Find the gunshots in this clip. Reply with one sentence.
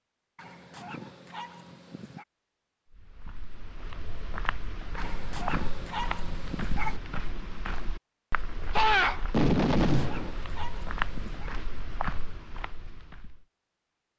The gunshots can be heard from 8.7 to 10.3 s.